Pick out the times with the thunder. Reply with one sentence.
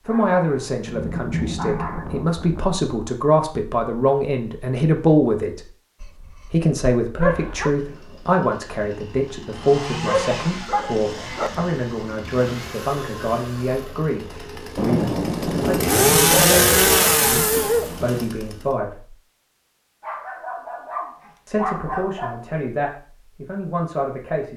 The thunder can be heard from 0.8 to 2.8 s and from 14.8 to 18.2 s.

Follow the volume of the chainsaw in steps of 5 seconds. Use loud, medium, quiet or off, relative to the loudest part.
off, quiet, quiet, loud, off.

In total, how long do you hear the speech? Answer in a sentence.
You can hear the speech for 21 seconds altogether.